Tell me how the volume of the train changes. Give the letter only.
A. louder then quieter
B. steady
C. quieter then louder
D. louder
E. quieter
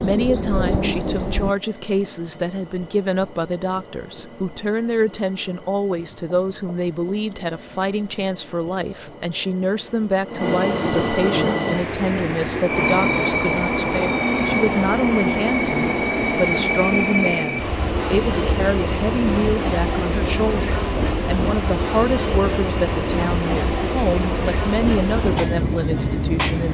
D.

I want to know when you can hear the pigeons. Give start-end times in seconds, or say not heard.
0.0-1.6.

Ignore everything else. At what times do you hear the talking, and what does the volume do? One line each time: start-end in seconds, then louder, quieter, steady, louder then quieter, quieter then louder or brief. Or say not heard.
0.0-26.6 steady.